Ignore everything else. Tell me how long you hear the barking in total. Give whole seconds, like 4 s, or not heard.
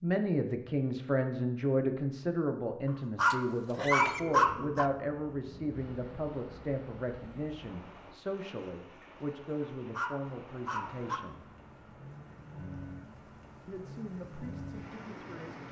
3 s.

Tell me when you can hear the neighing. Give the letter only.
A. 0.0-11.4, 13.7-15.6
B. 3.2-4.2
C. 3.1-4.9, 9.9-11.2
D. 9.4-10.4
B.